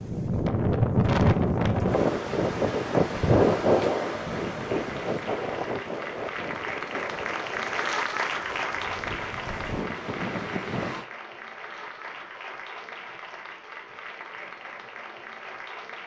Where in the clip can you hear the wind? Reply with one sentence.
The wind can be heard from 0.0 to 11.1 s.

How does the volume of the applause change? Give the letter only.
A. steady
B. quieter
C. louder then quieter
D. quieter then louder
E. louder
C.